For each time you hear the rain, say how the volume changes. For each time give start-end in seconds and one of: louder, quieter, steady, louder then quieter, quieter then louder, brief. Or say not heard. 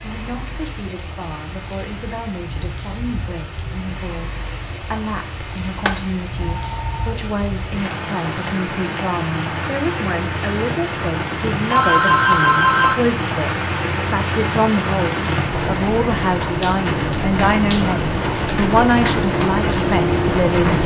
0.0-20.8 louder.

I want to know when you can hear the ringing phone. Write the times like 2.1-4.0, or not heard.
5.8-7.2, 11.7-12.9.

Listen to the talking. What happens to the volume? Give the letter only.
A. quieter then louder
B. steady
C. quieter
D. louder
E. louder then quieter
D.